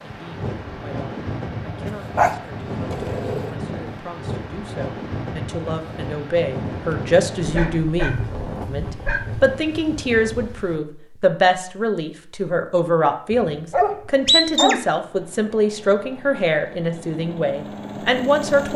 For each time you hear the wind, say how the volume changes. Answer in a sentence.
You can hear the wind from 0.0 to 10.8 s, at a steady volume.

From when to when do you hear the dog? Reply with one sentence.
You can hear the dog from 2.1 to 3.5 s, from 7.3 to 9.4 s and from 13.3 to 14.8 s.